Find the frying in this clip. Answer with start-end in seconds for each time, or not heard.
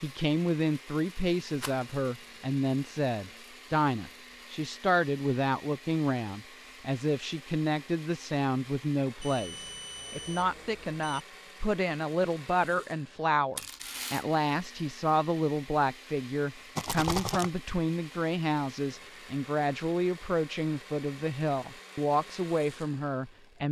not heard.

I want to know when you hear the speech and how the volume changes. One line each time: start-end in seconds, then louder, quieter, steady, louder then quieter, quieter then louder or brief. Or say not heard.
0.0-23.6 steady.